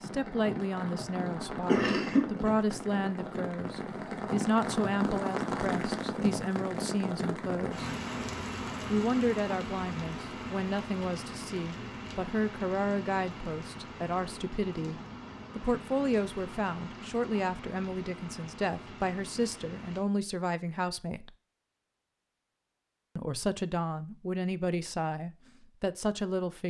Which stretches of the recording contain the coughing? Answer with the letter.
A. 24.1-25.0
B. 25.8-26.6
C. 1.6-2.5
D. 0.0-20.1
C.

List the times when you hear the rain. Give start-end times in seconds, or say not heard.
0.0-20.1.